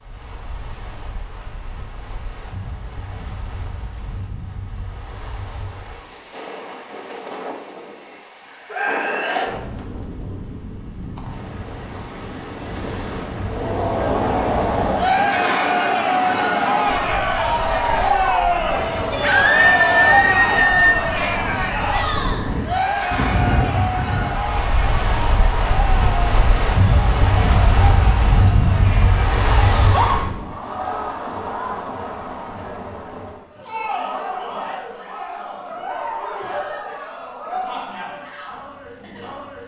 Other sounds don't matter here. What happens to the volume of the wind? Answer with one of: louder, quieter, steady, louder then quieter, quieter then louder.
louder.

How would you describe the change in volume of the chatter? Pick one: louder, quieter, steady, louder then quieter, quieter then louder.
quieter.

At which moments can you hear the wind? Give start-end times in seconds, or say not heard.
0.0-30.5.